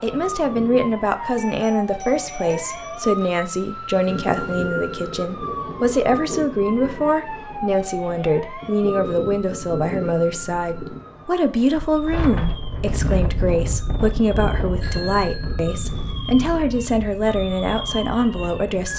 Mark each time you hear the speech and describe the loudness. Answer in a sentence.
You can hear the speech from 0.0 to 18.9 s, at a steady volume.